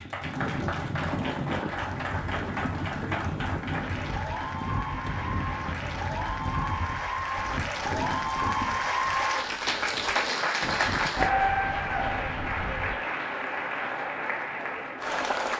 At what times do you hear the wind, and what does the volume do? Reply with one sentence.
You can hear the wind from 0.0 to 12.9 s, getting quieter.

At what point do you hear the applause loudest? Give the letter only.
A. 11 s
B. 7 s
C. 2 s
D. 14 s
A.